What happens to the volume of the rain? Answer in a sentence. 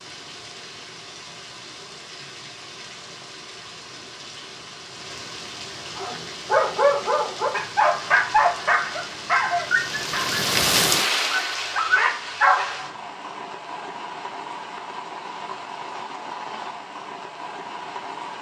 The volume of the rain goes up, then down.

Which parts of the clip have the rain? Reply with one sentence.
You can hear the rain from 0.0 to 18.3 s.